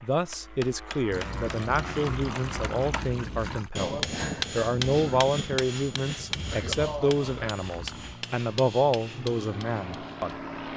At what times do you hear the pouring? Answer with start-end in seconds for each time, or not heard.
1.1-3.7, 6.3-8.2.